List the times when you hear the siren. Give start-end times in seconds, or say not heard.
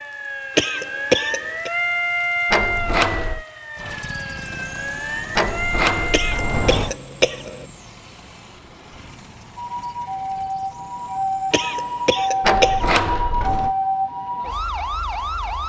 0.0-6.8, 9.6-15.6.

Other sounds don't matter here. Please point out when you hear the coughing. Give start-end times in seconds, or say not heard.
0.6-1.7, 6.1-7.7, 11.5-13.0.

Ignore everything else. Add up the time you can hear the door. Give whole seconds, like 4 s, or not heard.
4 s.